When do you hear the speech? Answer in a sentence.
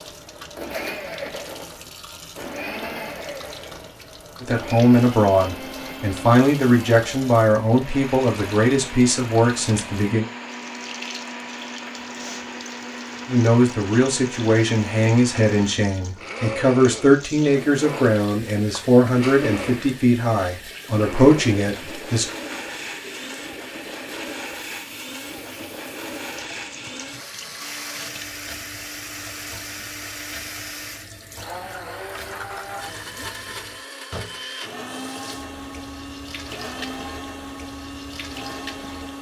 You can hear the speech from 4.4 to 10.2 s and from 13.2 to 22.2 s.